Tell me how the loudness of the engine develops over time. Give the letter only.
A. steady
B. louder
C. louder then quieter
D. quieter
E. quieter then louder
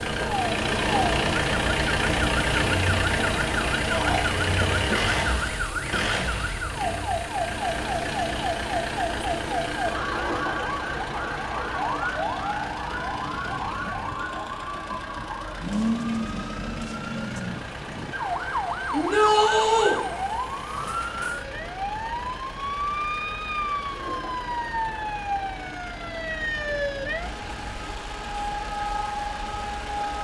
D.